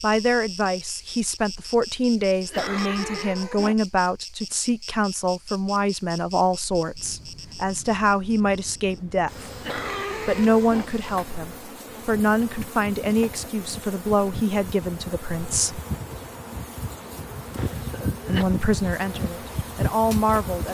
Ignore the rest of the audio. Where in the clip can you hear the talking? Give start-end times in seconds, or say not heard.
0.0-9.5, 10.2-15.8, 18.2-20.7.